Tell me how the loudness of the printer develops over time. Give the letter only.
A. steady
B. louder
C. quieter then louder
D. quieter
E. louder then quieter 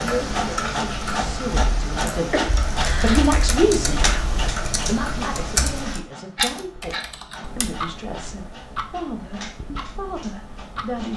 D.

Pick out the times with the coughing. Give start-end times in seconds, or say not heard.
2.3-3.3.